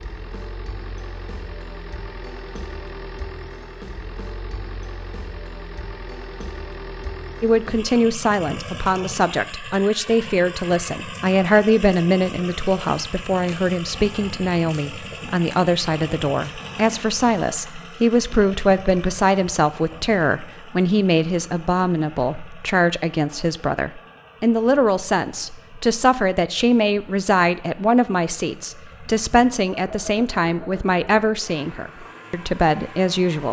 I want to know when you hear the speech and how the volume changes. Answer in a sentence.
The speech can be heard from 7.4 to 33.4 s, at a steady volume.